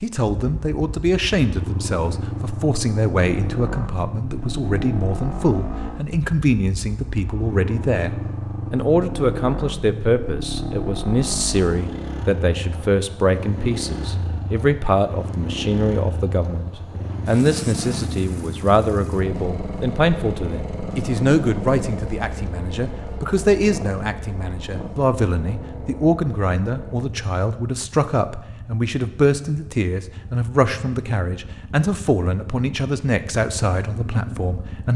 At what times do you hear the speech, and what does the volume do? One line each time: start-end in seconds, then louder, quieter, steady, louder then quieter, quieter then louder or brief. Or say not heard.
0.0-34.9 steady.